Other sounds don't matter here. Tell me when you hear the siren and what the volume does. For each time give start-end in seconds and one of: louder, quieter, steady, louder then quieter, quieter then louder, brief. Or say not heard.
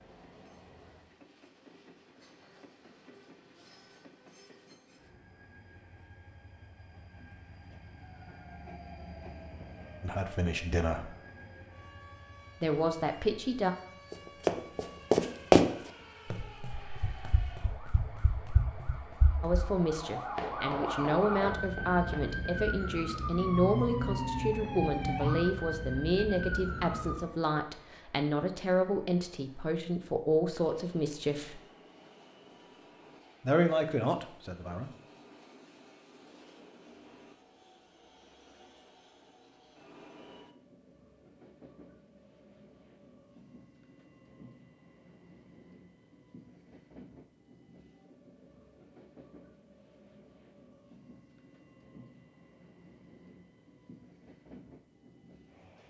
8.0-27.3 louder.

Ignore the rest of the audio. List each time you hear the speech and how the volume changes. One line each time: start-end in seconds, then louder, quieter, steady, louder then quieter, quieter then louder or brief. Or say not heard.
10.0-11.2 brief
12.6-13.8 brief
19.4-31.6 steady
33.4-34.9 brief.